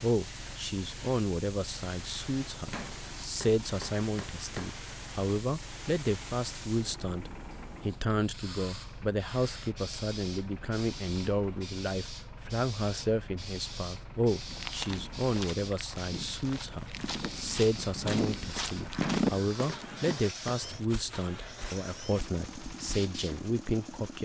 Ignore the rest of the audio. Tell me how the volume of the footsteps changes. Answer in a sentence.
The volume of the footsteps goes up, then down.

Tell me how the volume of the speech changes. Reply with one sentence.
The volume of the speech stays about the same.